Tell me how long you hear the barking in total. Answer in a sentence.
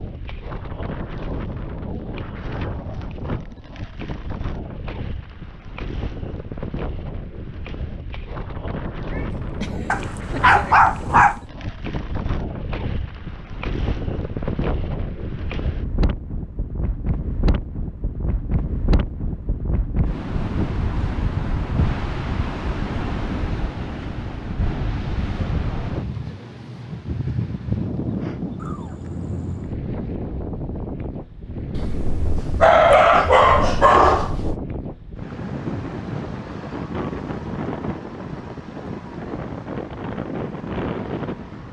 You can hear the barking for 4 seconds altogether.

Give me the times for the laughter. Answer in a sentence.
The laughter can't be heard in this clip.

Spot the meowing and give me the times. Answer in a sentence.
You can hear the meowing from 9.1 to 10.4 s and from 28.6 to 29.8 s.